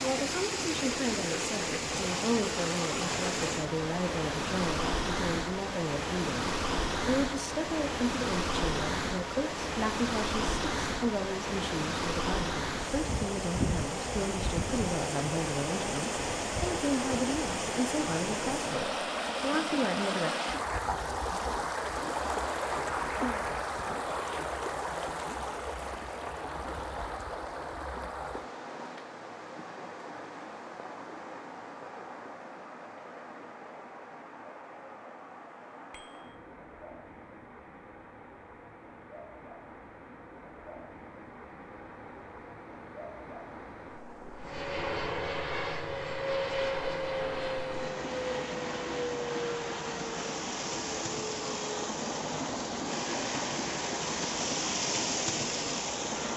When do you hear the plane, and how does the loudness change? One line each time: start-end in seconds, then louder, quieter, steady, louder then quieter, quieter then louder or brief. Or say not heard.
44.4-56.3 quieter.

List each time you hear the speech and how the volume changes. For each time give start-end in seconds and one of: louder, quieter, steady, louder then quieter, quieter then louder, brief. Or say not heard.
0.0-20.4 steady.